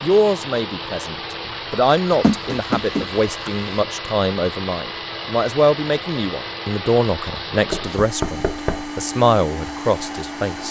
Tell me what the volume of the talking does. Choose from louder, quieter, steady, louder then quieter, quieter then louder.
steady.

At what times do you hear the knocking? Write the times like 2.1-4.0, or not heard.
2.2-3.6, 7.7-8.9.